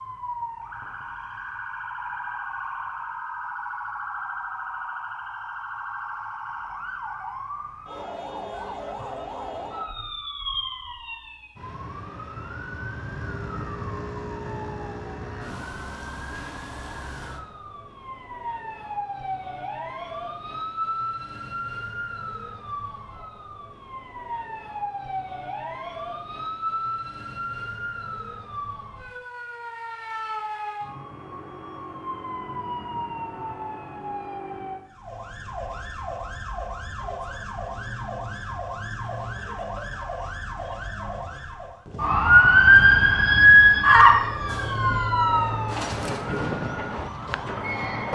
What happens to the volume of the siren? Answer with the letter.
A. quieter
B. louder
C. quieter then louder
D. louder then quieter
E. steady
B.